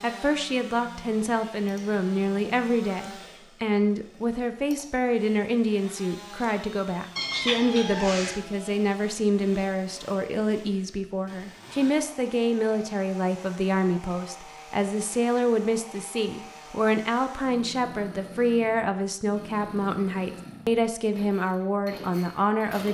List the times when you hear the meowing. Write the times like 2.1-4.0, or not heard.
7.2-8.4.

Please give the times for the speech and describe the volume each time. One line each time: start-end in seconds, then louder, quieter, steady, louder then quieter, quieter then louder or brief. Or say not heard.
0.0-22.8 steady.